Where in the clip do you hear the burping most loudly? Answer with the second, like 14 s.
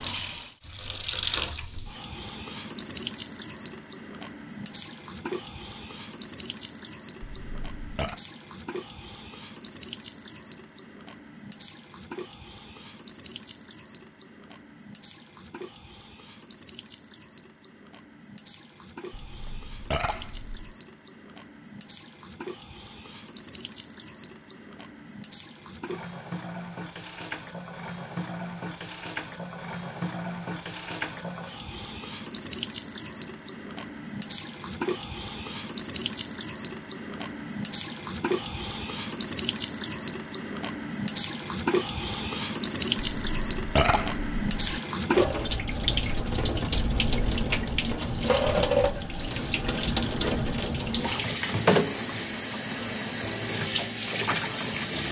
44 s.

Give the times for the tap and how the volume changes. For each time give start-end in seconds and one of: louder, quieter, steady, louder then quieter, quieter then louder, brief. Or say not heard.
0.0-55.0 quieter then louder.